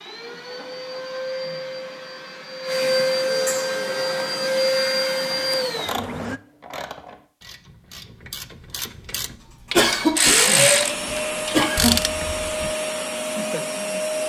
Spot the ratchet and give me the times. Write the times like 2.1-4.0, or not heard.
5.3-12.7.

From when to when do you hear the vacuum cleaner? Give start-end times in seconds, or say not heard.
0.0-6.4, 10.2-14.2.